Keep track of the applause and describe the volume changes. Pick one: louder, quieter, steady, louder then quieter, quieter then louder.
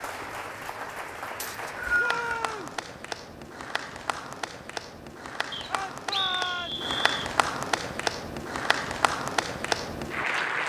louder.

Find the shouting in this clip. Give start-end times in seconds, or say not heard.
1.9-2.8, 5.7-6.8.